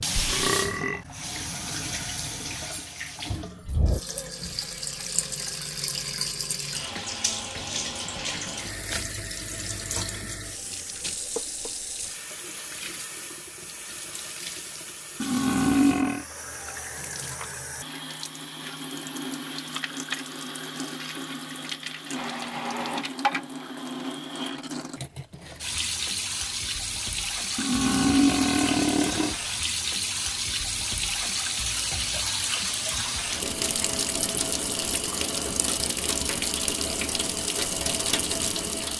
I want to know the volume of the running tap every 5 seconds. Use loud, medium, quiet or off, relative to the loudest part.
loud, loud, medium, medium, loud, loud, loud, loud.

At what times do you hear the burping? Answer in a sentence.
The burping can be heard from 0.1 to 1.0 s, from 15.2 to 16.2 s and from 27.6 to 29.4 s.